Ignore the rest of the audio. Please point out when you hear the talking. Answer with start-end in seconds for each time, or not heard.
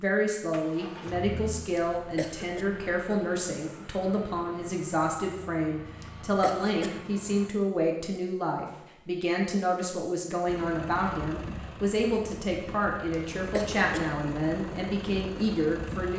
0.0-16.1.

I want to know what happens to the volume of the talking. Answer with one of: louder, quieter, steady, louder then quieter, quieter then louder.
steady.